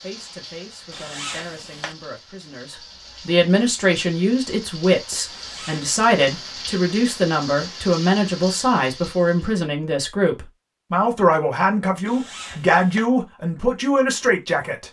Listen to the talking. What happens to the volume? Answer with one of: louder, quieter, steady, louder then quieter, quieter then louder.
louder.